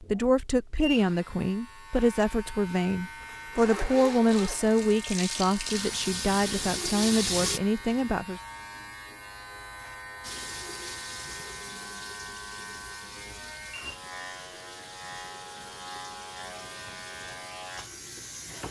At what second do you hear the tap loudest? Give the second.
7 s.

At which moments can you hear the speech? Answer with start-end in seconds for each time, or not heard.
0.0-8.4.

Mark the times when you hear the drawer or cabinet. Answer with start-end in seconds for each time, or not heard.
not heard.